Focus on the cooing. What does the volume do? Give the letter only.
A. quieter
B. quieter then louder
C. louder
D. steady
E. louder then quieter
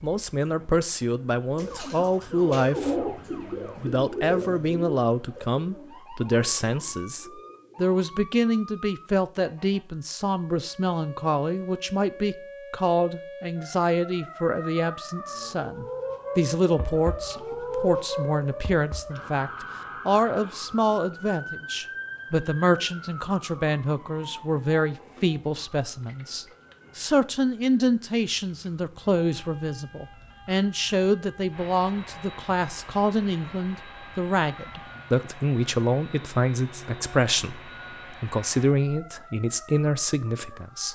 A.